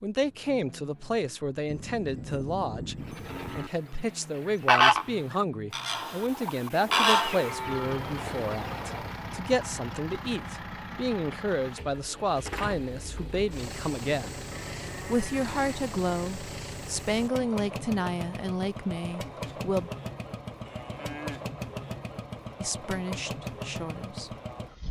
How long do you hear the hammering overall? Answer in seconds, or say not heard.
not heard.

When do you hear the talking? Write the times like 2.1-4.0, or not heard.
0.0-3.0, 3.5-14.4, 15.1-19.9, 22.6-24.4.